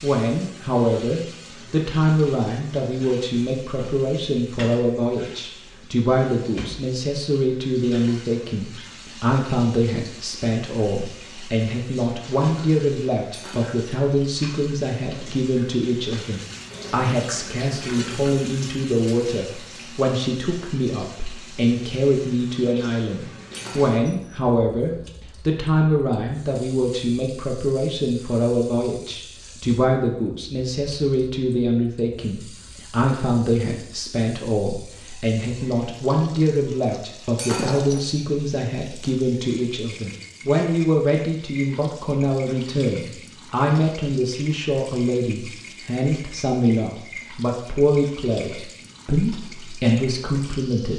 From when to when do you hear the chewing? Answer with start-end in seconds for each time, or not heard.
not heard.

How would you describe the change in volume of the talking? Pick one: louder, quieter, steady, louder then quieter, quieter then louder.
steady.